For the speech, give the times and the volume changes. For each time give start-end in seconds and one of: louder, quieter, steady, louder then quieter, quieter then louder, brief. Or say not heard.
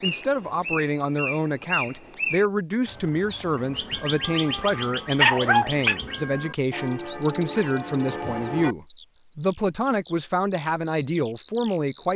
0.0-12.1 steady.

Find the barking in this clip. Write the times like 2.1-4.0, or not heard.
4.2-6.0.